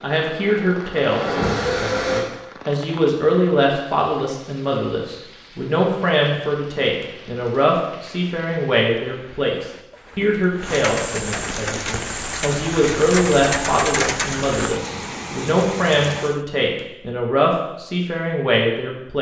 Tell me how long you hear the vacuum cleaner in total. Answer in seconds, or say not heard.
2 s.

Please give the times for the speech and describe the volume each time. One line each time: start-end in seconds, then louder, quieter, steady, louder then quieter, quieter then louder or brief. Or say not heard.
0.0-19.1 steady.